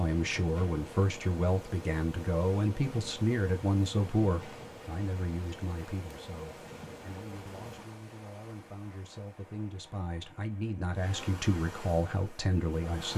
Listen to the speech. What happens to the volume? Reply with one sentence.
The volume of the speech goes down, then up.